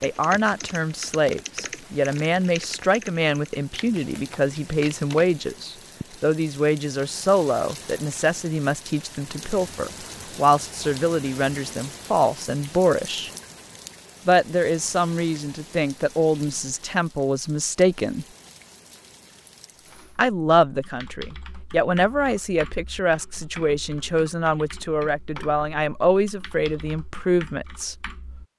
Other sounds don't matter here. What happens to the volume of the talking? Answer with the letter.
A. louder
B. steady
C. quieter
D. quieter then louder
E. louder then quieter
B.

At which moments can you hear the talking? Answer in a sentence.
You can hear the talking from 0.0 to 13.3 s, from 14.2 to 18.2 s and from 20.1 to 27.9 s.